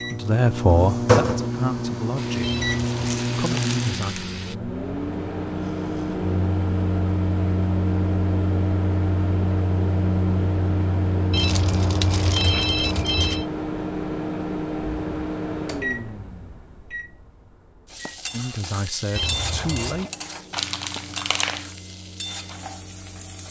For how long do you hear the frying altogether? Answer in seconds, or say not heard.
8 s.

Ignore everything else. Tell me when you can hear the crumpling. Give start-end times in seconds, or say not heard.
2.9-4.3, 11.3-13.4, 20.5-21.7.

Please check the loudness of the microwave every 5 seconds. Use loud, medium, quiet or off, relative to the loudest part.
loud, loud, loud, medium, quiet.